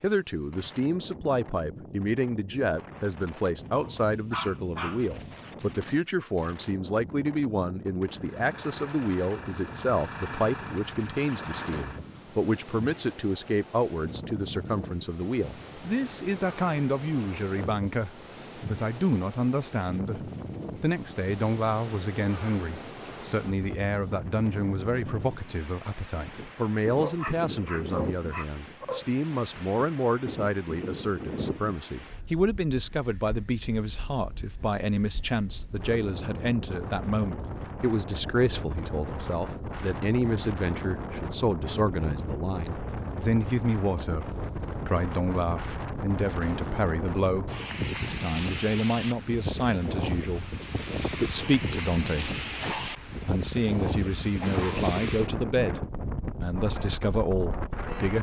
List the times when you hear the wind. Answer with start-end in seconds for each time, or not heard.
0.0-58.1.